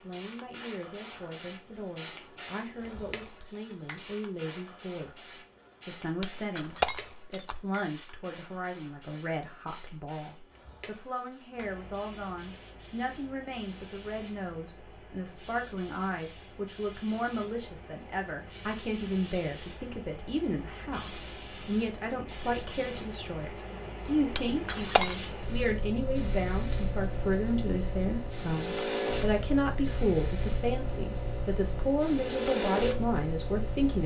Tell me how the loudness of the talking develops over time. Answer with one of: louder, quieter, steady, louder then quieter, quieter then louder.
louder.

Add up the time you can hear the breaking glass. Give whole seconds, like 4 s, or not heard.
2 s.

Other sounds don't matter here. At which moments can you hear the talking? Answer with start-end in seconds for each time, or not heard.
0.0-34.0.